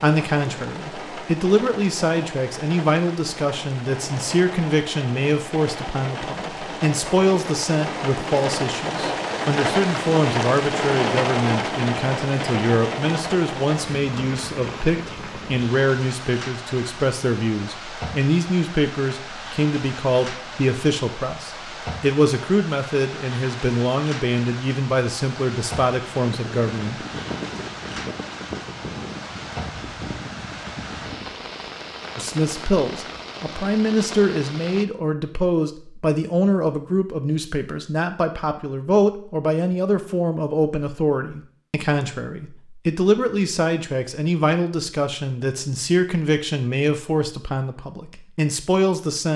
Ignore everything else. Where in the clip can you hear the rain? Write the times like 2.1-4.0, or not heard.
0.0-34.9.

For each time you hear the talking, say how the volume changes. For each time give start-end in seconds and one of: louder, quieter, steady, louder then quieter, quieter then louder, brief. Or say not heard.
0.0-27.1 steady
32.1-49.3 steady.